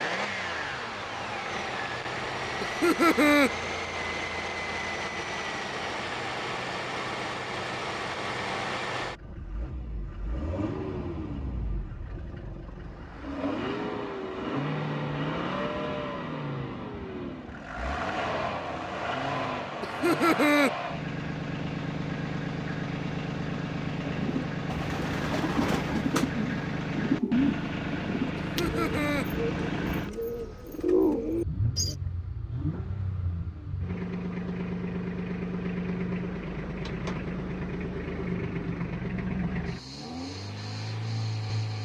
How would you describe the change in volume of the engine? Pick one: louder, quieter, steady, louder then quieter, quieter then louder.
steady.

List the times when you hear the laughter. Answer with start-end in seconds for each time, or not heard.
2.6-3.5, 19.8-20.7, 28.4-29.2.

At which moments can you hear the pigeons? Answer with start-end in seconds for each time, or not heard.
24.0-31.9.